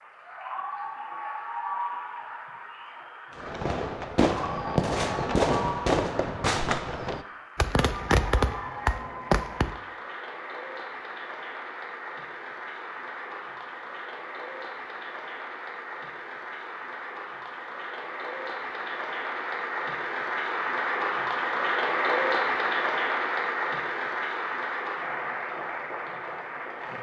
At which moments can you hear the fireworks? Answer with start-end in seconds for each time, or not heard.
3.4-9.8.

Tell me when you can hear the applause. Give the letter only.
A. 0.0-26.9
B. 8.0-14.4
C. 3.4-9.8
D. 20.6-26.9
A.